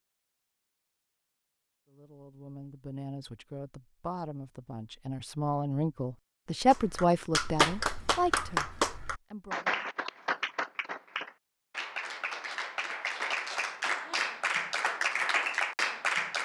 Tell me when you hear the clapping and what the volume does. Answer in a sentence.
The clapping can be heard from 6.7 to 16.4 s, getting quieter then louder.